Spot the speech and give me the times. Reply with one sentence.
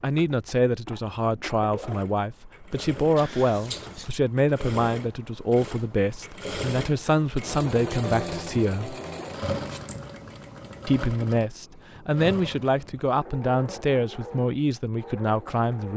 The speech can be heard from 0.0 to 8.9 s and from 10.8 to 15.9 s.